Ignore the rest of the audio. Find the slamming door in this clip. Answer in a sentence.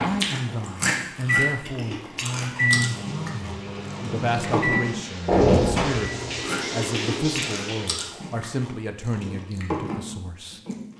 The slamming door can be heard from 5.2 to 6.0 s.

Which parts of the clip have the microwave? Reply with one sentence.
The microwave can be heard from 0.0 to 6.5 s.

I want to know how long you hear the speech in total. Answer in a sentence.
You can hear the speech for 11 seconds altogether.